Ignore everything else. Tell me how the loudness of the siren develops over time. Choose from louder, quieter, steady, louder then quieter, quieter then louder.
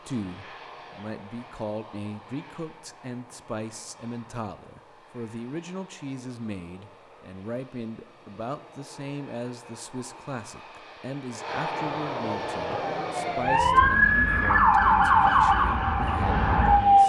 louder then quieter.